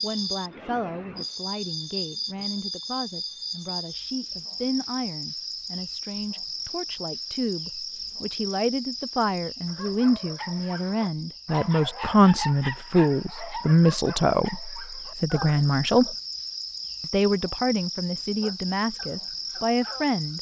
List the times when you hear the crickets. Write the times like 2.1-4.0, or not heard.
0.0-20.3.